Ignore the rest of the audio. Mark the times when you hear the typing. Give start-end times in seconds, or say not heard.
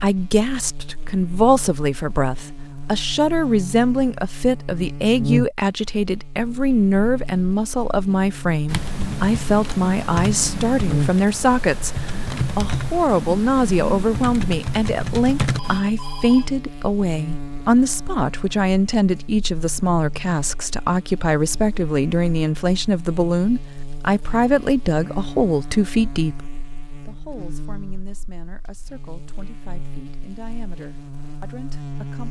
8.7-15.8.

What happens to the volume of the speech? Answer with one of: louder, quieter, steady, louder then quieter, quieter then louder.
quieter.